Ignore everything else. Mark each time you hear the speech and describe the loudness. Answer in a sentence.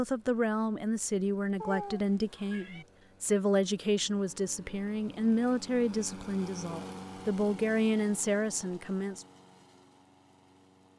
The speech can be heard from 0.0 to 9.2 s, at a steady volume.